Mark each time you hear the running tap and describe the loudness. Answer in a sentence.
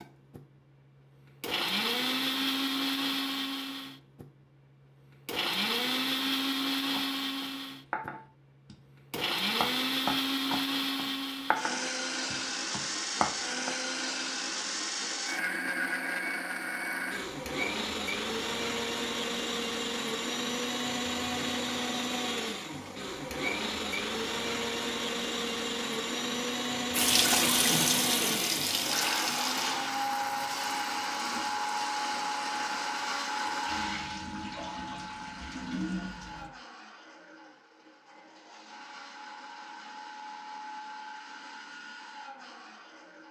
You can hear the running tap from 26.9 to 36.5 s, getting quieter then louder.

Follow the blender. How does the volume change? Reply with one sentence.
The volume of the blender goes down.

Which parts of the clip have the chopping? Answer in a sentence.
The chopping can be heard from 6.9 to 13.7 s.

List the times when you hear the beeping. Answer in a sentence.
The beeping can't be heard in this clip.